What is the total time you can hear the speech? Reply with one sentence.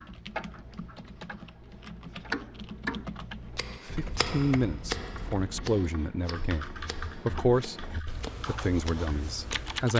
The speech can be heard for 5 seconds in total.